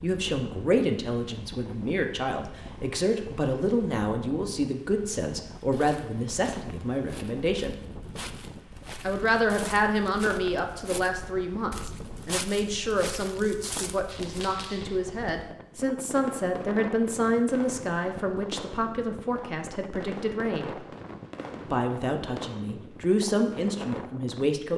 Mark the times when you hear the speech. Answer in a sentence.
You can hear the speech from 0.0 to 7.8 s, from 9.0 to 20.8 s and from 21.7 to 24.7 s.